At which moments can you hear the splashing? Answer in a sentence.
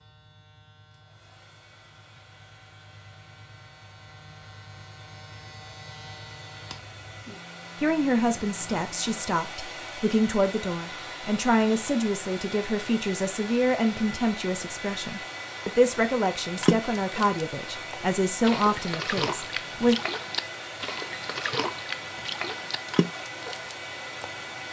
You can hear the splashing from 16.6 to 24.5 s.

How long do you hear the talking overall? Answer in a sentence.
The talking can be heard for 12 seconds in total.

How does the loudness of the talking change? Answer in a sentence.
The volume of the talking stays about the same.